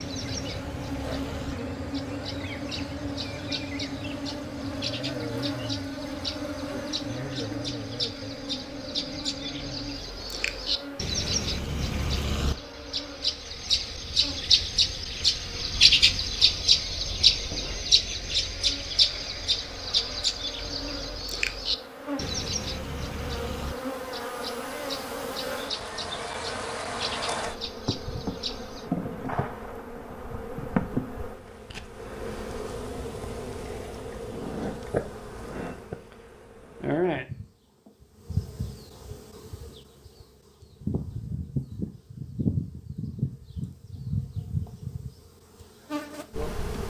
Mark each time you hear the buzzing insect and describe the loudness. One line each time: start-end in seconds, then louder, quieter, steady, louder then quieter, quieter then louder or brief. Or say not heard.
0.0-46.8 quieter then louder.